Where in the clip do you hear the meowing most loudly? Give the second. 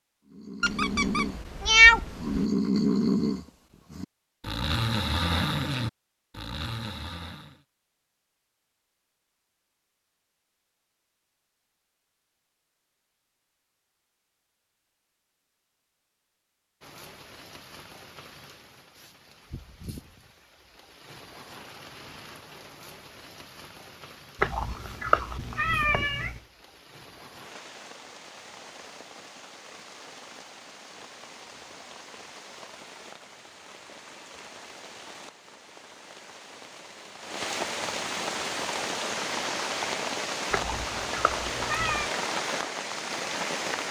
2 s.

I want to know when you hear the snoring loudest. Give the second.
3 s.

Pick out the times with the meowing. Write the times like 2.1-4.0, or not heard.
0.6-2.5, 24.4-26.4, 40.5-42.1.